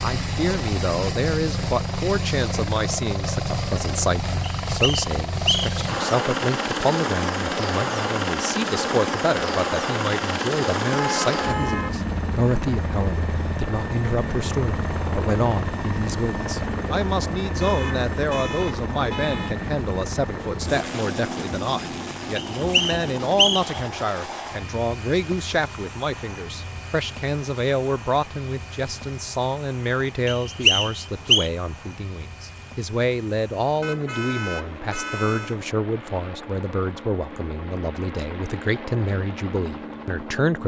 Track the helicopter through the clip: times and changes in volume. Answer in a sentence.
The helicopter can be heard from 0.0 to 40.6 s, getting quieter.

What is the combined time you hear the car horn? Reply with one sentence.
You can hear the car horn for 5 seconds altogether.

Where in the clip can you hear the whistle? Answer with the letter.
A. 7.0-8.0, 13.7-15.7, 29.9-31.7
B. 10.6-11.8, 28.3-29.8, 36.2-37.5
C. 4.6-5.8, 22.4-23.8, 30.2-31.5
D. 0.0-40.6
C.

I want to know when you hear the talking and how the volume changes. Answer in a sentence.
The talking can be heard from 0.0 to 40.6 s, at a steady volume.